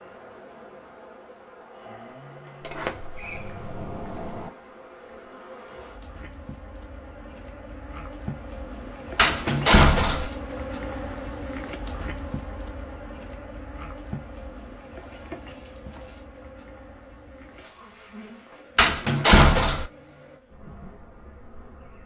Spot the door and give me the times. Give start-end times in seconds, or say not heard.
2.6-4.5, 9.2-10.3, 18.8-19.9.